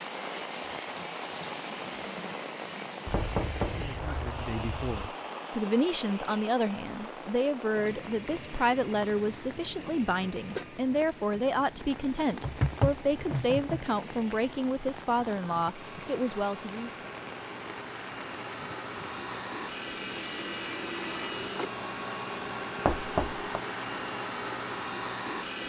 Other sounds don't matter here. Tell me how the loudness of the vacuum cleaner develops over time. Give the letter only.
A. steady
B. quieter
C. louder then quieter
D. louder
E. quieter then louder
E.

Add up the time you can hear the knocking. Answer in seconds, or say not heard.
4 s.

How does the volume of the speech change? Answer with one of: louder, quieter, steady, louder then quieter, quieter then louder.
steady.